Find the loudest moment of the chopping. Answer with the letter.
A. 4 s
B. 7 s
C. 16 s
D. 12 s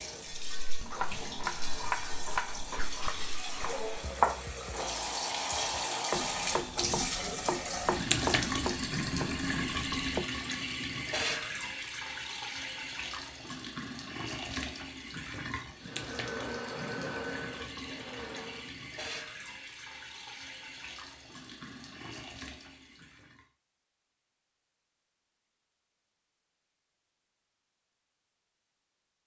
A.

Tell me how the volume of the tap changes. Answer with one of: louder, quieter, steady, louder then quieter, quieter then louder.
louder then quieter.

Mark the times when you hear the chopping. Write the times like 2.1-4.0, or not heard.
0.3-10.2.